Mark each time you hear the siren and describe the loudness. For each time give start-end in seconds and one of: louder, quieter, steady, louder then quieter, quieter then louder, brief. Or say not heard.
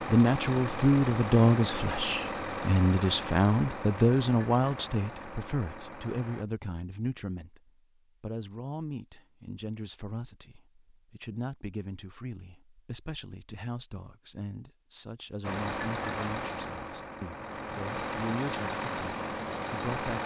not heard.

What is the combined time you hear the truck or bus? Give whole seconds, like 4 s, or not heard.
11 s.